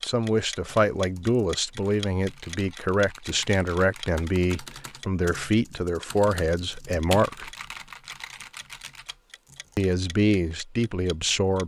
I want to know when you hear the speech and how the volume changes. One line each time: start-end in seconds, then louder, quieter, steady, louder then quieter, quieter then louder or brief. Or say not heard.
0.0-7.5 steady
9.8-11.6 brief.